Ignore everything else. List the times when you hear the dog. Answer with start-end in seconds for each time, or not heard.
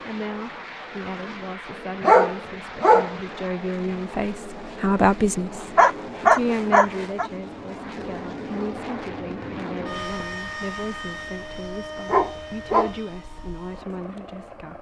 2.0-3.1, 5.8-7.3, 12.1-12.9.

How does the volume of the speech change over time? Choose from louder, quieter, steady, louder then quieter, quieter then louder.
louder then quieter.